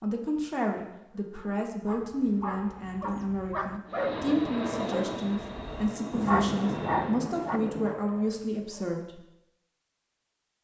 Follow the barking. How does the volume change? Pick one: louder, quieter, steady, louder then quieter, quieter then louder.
louder then quieter.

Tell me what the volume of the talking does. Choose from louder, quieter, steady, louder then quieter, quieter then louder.
steady.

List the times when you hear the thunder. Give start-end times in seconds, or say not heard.
6.1-8.0.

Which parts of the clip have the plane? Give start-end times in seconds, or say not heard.
3.9-7.2.